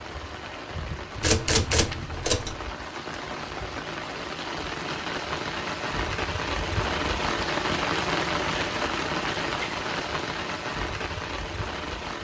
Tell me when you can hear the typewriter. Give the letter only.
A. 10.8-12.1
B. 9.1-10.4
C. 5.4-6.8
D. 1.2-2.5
D.